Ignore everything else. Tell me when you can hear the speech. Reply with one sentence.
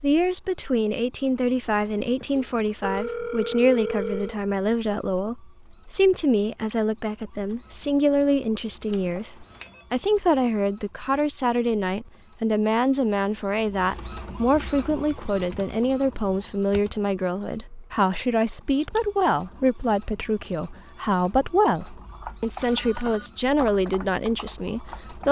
The speech can be heard from 0.0 to 25.2 s.